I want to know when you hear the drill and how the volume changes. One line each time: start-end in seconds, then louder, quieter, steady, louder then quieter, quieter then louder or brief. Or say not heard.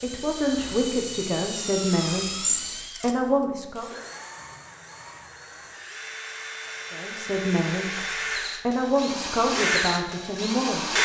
0.0-11.0 quieter then louder.